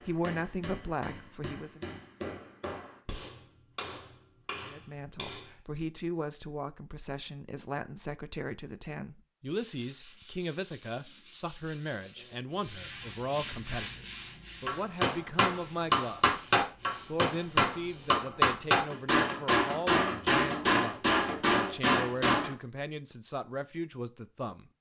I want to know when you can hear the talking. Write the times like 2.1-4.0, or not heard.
0.1-1.9, 4.7-16.2, 17.1-24.7.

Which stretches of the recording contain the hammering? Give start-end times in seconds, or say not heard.
0.0-5.5, 14.7-22.5.